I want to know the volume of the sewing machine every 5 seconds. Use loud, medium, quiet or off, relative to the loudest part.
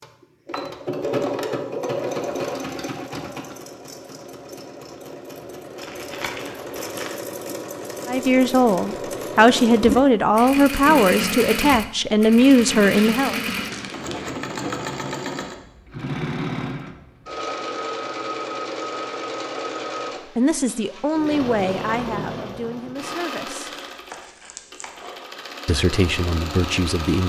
loud, loud, loud, loud, medium, medium.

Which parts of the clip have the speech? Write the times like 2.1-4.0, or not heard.
8.1-13.3, 20.4-23.8, 25.6-27.2.